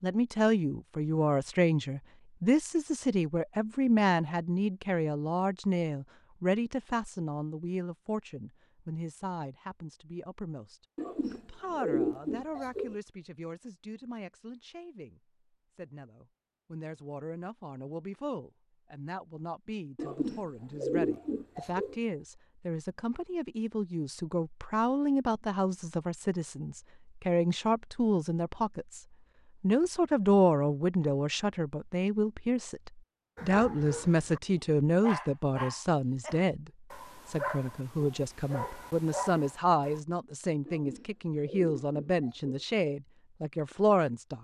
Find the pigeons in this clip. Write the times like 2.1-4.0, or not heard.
10.9-12.9, 19.9-21.9, 40.6-42.6.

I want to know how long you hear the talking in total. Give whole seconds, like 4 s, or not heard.
44 s.